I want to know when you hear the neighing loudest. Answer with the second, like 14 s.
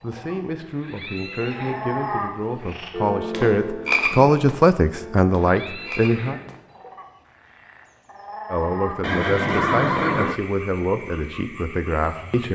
10 s.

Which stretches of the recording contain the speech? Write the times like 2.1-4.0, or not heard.
0.0-6.4, 8.5-12.4.